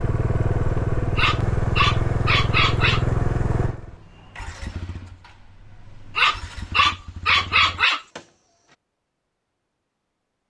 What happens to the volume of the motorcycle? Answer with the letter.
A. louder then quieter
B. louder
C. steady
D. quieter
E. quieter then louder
D.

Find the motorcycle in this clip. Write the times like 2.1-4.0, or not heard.
0.0-8.8.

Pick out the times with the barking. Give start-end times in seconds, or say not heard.
1.1-3.0, 6.2-8.0.